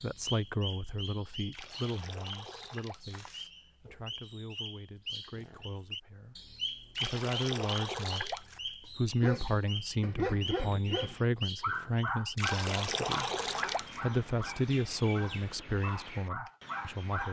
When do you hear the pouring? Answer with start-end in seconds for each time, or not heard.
1.5-3.5, 7.0-8.6, 12.3-14.0.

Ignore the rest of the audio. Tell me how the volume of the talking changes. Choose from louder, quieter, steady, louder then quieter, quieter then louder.
quieter then louder.